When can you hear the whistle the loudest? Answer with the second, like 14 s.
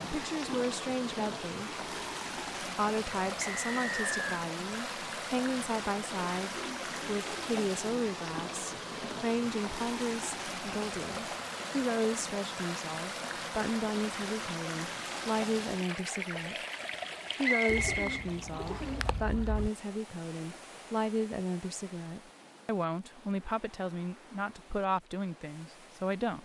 18 s.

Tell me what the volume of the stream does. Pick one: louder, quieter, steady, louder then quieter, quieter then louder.
quieter.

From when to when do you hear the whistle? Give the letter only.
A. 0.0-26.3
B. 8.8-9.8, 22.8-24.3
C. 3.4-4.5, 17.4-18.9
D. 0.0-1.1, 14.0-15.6
C.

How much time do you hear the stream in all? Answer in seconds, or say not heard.
26 s.